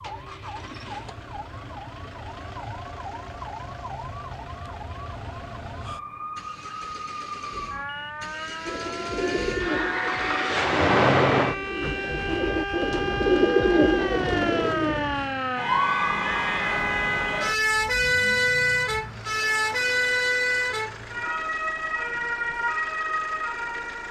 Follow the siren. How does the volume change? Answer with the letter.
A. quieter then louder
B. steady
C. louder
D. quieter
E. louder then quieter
C.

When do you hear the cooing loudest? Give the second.
13 s.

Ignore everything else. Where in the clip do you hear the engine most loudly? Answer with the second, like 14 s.
11 s.